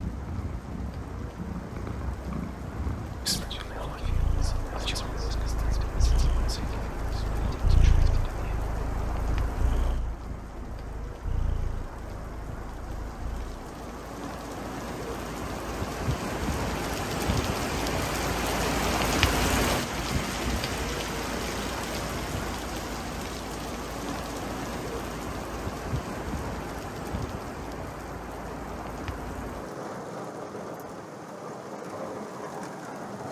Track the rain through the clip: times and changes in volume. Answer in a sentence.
The rain can be heard from 0.0 to 33.2 s, getting louder then quieter.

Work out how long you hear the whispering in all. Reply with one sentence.
The whispering can be heard for 5 seconds in total.